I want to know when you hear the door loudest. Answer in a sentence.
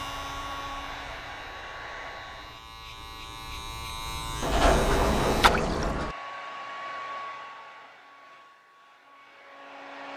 The loudest moment of the door is at 5 seconds.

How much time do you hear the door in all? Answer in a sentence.
The door can be heard for 2 seconds in total.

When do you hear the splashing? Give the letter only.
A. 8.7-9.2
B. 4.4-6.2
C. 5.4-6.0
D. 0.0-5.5
C.